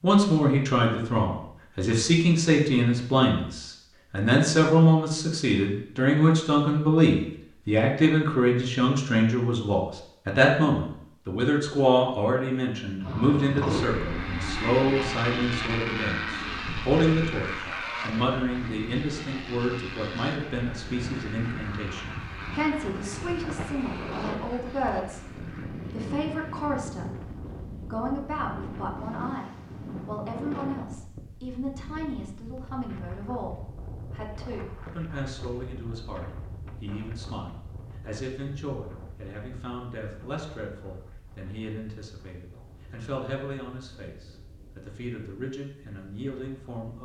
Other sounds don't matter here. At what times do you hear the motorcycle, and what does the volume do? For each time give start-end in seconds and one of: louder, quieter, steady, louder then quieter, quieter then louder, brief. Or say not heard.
13.0-26.9 quieter.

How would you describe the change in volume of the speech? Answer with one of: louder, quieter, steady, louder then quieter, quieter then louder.
quieter.